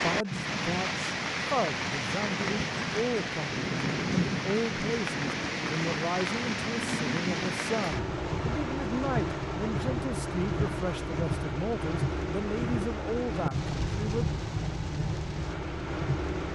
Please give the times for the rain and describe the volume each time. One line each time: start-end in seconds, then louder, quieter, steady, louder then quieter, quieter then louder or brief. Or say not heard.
0.0-16.5 steady.